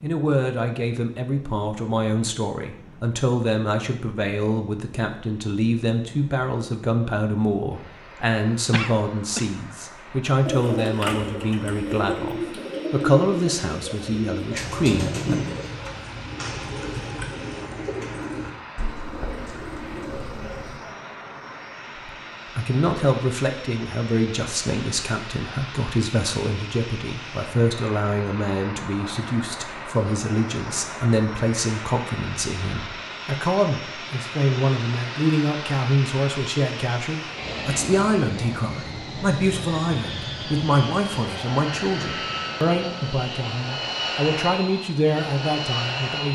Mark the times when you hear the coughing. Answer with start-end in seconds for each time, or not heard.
8.7-9.4.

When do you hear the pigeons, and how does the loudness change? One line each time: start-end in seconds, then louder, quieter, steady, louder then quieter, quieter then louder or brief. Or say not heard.
10.4-20.9 quieter.